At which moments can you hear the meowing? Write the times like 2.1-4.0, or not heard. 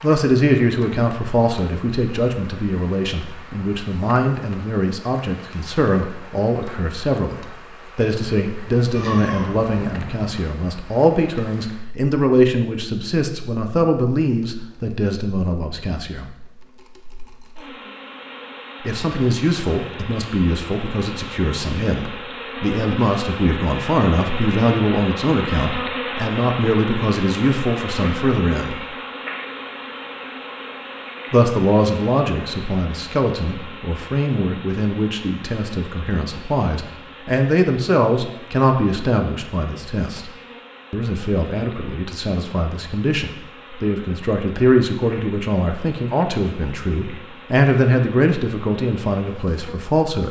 8.9-10.3.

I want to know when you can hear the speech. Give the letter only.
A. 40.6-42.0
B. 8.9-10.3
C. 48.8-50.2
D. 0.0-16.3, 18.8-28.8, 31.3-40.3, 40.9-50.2
D.